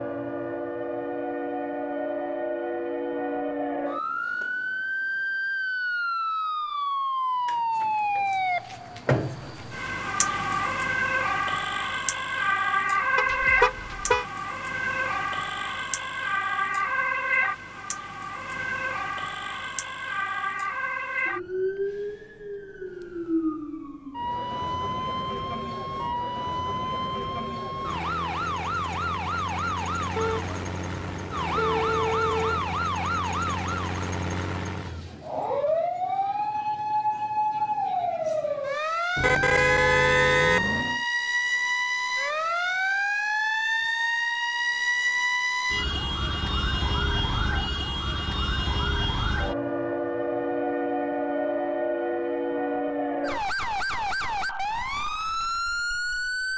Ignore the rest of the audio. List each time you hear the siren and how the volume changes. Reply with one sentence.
You can hear the siren from 0.0 to 56.5 s, at a steady volume.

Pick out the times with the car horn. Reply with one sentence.
The car horn can be heard from 13.2 to 14.2 s, from 30.1 to 32.7 s and from 39.1 to 41.0 s.